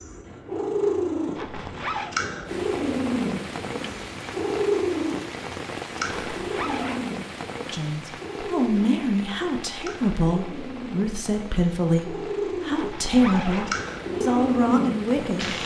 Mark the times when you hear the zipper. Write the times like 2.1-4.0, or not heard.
1.4-2.1, 6.0-7.0, 12.7-13.8.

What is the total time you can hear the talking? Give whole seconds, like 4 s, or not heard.
8 s.